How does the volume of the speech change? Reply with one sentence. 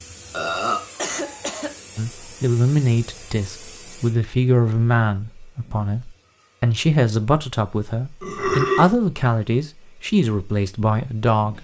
The loudness of the speech stays about the same.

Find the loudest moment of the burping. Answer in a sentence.
The volume of the burping peaks at 9 seconds.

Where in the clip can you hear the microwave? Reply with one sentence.
The microwave can't be heard in this clip.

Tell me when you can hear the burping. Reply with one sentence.
The burping can be heard from 0.3 to 0.8 s and from 8.2 to 9.0 s.